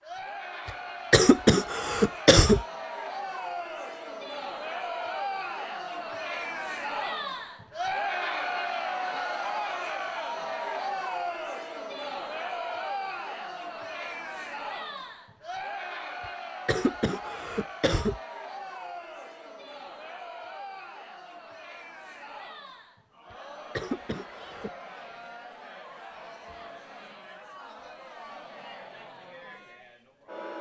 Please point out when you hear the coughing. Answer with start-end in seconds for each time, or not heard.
0.7-2.6, 16.2-18.2, 23.3-24.7.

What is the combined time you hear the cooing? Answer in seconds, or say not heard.
not heard.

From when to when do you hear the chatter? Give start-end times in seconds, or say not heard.
0.0-30.5.